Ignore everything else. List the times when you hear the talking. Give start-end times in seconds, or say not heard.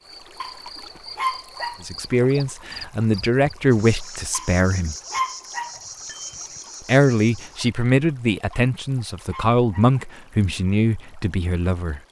1.8-5.0, 6.8-12.0.